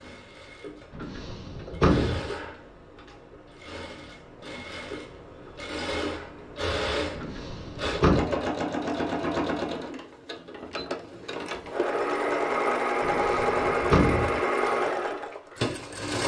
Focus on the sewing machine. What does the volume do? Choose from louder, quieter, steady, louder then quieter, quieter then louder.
louder.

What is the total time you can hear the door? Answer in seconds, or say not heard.
4 s.